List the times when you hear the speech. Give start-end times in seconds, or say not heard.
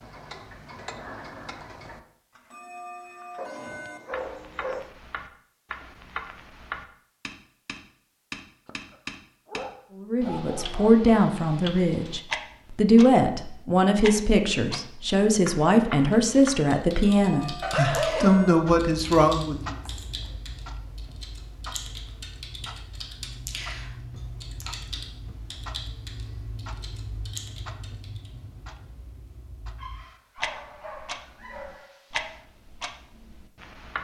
9.9-19.8.